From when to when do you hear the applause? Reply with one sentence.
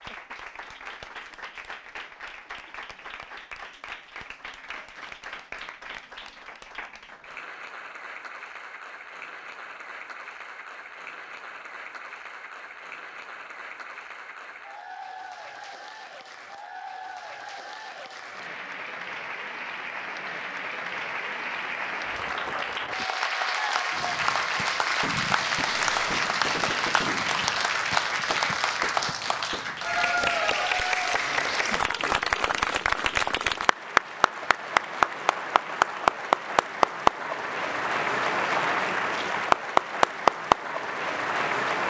You can hear the applause from 0.0 to 41.8 s.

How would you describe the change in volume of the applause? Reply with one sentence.
The volume of the applause goes up.